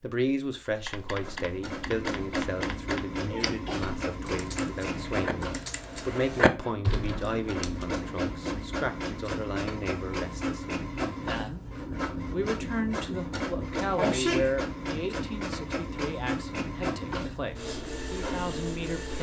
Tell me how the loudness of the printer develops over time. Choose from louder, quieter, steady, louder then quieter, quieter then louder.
steady.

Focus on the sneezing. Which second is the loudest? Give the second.
14 s.